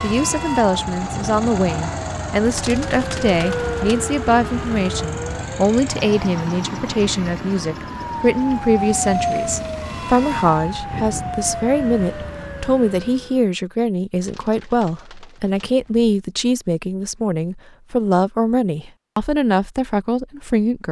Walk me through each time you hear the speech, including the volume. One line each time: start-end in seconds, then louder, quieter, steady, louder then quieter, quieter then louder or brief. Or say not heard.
0.0-20.8 steady.